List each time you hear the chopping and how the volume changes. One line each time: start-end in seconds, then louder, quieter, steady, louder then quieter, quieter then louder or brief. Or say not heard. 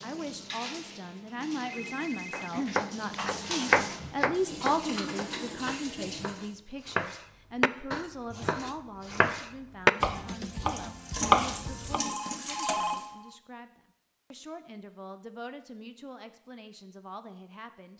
2.3-12.0 quieter then louder.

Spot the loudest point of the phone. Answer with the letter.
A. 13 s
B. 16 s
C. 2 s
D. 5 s
A.